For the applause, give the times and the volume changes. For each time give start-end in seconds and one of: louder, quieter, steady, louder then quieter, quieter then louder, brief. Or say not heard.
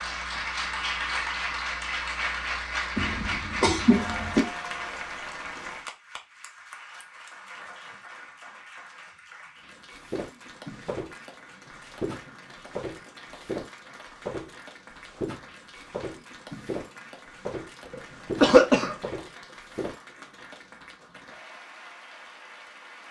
0.0-23.0 quieter.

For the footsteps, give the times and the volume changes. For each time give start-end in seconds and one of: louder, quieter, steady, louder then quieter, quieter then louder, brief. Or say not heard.
9.9-20.0 steady.